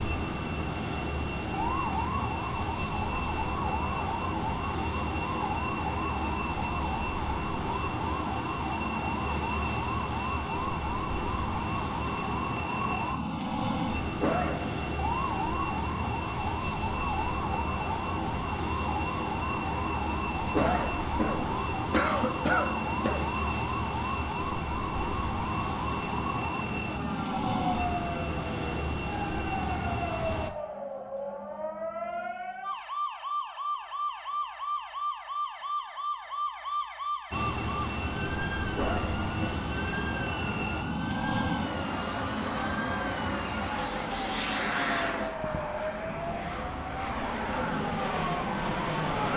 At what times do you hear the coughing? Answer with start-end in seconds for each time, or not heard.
14.2-14.8, 20.5-23.3, 38.8-39.5.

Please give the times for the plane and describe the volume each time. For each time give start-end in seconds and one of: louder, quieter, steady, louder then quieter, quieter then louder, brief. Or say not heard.
0.0-30.5 steady
37.3-49.3 steady.